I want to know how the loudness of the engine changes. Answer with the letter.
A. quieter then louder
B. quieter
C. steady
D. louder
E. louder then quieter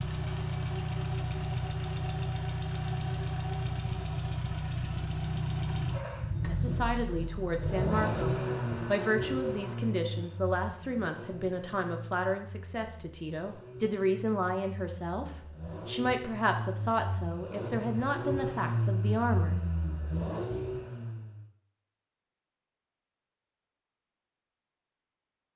A.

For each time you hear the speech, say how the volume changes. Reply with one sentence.
You can hear the speech from 6.5 to 19.6 s, at a steady volume.